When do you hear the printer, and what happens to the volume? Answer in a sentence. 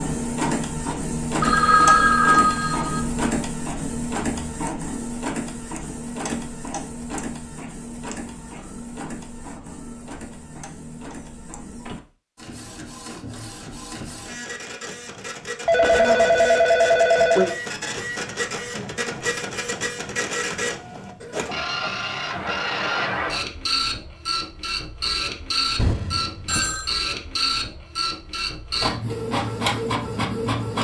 The printer can be heard from 0.0 to 30.7 s, getting quieter then louder.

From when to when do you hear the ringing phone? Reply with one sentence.
You can hear the ringing phone from 1.4 to 3.0 s, from 15.7 to 17.6 s and from 25.8 to 26.9 s.